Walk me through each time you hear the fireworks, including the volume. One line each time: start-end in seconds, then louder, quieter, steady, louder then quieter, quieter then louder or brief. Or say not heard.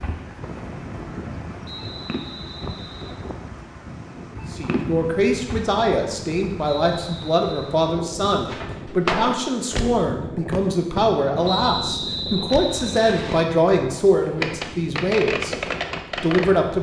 0.0-5.8 quieter then louder
8.4-13.6 quieter
14.4-16.6 brief.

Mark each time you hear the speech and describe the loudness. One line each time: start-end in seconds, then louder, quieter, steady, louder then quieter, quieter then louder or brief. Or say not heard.
4.5-15.6 steady
16.2-16.7 brief.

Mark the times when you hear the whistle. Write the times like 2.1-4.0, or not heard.
1.6-3.2, 6.8-7.7, 11.4-13.4.